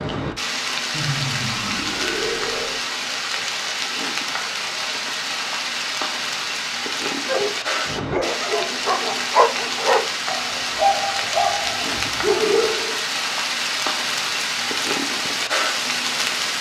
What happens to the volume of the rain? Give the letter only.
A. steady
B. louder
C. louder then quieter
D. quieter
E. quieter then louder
A.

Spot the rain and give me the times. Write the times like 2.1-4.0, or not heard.
0.0-16.5.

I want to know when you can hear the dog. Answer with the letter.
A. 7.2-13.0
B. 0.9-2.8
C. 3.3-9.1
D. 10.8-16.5
A.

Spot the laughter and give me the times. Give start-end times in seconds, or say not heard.
0.9-2.8.